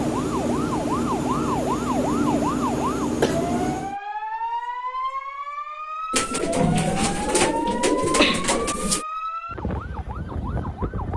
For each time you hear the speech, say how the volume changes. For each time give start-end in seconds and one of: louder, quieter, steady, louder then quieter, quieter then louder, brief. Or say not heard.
not heard.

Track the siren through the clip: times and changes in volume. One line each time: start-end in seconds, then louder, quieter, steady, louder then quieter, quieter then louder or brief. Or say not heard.
0.0-11.1 steady.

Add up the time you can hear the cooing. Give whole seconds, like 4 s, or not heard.
3 s.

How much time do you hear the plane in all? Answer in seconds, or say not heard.
4 s.